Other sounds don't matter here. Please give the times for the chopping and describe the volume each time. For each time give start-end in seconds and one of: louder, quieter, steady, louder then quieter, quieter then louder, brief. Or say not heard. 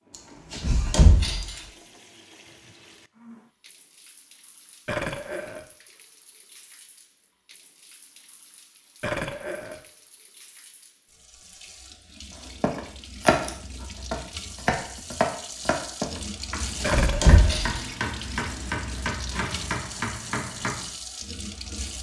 12.6-20.9 quieter.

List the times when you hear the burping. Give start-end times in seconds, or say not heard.
4.8-5.7, 9.0-9.8, 16.8-17.6.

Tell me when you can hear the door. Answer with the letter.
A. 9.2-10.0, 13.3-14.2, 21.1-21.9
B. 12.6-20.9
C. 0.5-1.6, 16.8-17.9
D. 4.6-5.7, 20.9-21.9
C.